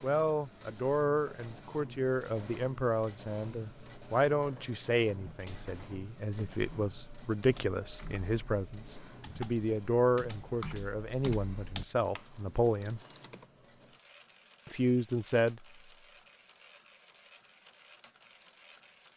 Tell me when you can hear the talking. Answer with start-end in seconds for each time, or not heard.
0.0-13.0, 14.7-15.7.